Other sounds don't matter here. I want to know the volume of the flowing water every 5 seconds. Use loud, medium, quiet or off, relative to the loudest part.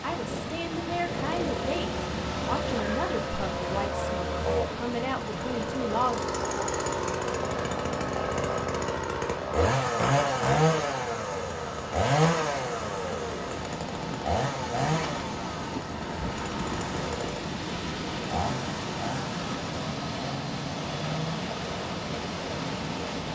loud, medium, medium, loud, loud.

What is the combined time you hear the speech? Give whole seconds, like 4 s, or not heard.
6 s.